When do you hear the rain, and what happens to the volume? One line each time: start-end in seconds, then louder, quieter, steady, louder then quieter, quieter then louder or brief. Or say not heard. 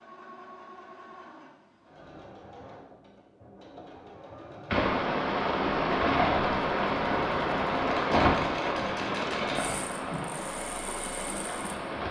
4.7-12.0 quieter.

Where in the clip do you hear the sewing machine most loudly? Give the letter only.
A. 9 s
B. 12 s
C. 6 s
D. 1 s
A.